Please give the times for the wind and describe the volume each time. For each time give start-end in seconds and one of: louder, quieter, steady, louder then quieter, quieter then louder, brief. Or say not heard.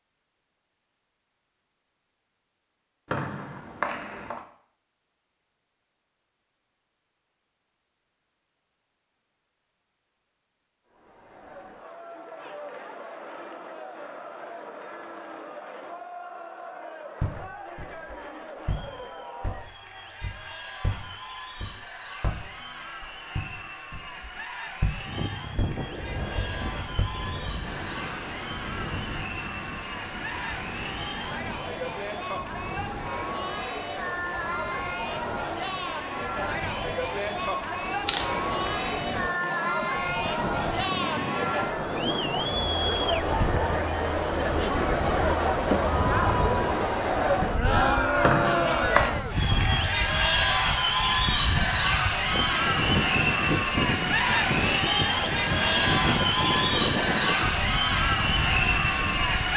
25.1-59.5 louder.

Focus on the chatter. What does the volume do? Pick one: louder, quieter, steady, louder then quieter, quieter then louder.
louder.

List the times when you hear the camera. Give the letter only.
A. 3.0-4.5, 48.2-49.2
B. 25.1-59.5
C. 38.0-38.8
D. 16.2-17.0
C.